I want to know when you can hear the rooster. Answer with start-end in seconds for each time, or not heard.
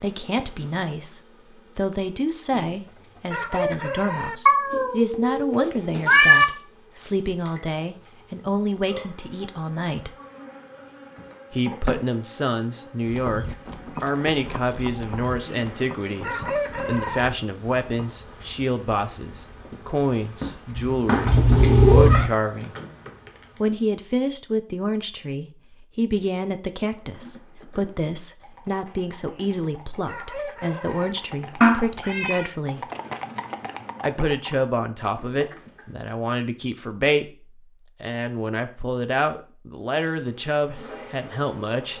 2.5-4.3, 15.4-17.3, 29.3-31.1.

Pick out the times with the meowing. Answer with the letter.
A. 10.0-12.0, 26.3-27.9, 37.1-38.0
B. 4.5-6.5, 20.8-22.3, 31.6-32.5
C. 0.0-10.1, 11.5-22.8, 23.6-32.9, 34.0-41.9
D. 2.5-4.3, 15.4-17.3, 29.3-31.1
B.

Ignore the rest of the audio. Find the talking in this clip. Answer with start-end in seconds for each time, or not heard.
0.0-10.1, 11.5-22.8, 23.6-32.9, 34.0-41.9.